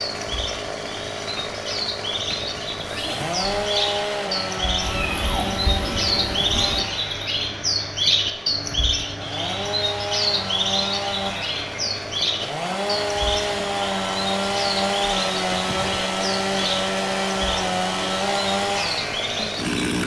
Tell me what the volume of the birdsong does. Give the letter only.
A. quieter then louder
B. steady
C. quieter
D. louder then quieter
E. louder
D.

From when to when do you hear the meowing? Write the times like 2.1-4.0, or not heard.
4.8-6.8.